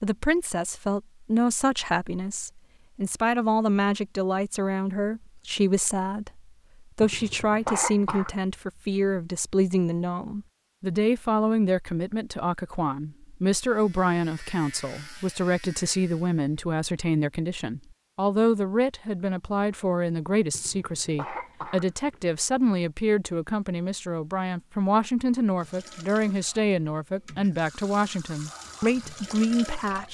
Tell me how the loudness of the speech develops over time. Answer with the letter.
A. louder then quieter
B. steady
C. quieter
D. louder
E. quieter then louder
B.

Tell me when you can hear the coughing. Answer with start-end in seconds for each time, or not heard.
7.0-8.3, 20.5-22.2.